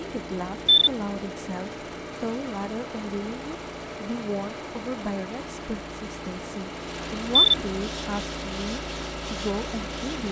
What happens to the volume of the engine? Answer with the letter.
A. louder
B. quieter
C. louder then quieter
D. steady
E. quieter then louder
D.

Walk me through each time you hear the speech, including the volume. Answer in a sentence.
You can hear the speech from 0.0 to 10.2 s, at a steady volume.